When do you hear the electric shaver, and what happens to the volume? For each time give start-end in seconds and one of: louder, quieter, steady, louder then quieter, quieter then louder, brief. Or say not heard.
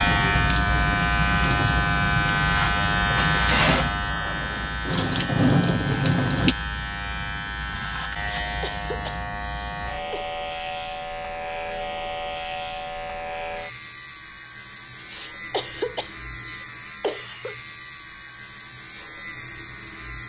0.0-20.2 quieter.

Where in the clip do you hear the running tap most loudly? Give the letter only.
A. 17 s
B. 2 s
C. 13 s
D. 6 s
D.